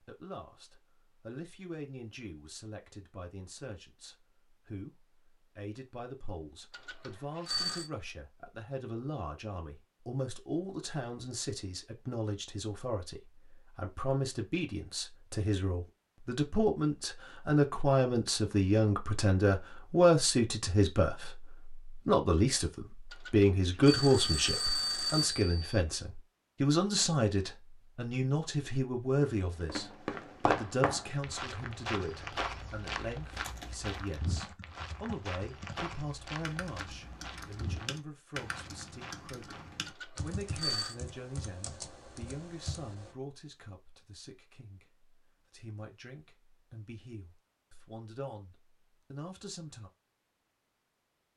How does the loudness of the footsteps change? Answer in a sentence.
The loudness of the footsteps goes down.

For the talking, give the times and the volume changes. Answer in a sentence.
The talking can be heard from 0.0 to 49.9 s, getting louder then quieter.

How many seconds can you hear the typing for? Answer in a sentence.
The typing can be heard for 10 seconds in total.